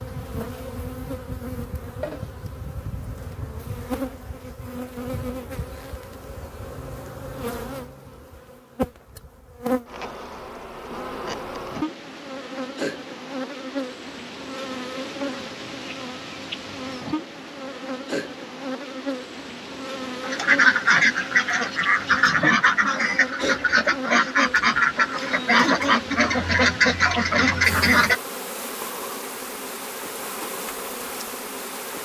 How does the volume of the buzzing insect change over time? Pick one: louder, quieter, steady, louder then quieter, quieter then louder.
steady.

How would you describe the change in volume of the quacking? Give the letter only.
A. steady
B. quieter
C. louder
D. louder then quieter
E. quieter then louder
A.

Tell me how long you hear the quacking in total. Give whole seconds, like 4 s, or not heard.
8 s.